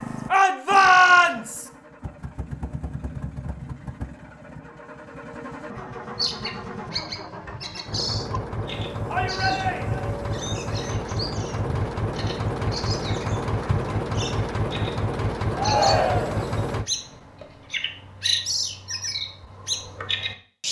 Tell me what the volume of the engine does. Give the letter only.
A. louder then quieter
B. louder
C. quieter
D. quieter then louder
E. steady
B.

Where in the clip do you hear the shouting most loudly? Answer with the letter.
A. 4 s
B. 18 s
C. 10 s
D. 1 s
D.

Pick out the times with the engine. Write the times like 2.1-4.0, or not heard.
0.0-16.9.